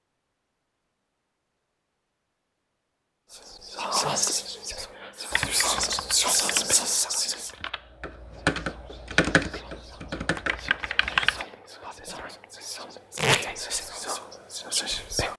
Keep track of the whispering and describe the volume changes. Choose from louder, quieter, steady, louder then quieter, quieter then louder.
quieter then louder.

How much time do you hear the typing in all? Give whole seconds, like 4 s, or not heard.
6 s.